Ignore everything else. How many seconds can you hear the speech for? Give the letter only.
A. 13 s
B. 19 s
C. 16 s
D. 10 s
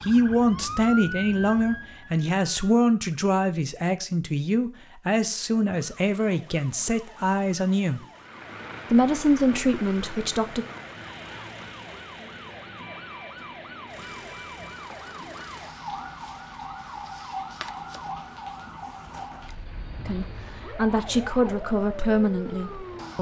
A.